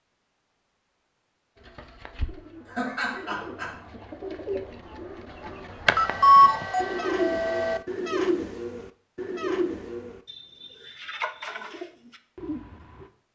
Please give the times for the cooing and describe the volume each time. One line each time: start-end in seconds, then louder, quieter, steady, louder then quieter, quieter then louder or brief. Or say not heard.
1.6-13.1 louder then quieter.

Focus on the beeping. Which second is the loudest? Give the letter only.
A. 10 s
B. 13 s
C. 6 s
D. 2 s
C.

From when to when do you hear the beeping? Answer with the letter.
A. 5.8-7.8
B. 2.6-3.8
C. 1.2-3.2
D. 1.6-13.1
A.